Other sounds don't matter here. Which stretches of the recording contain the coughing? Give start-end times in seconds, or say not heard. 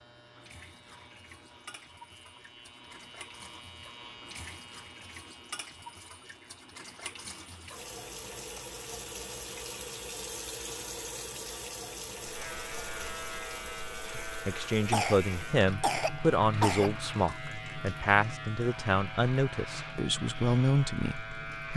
14.9-17.4.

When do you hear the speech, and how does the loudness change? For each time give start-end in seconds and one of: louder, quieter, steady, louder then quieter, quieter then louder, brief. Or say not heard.
14.2-21.7 steady.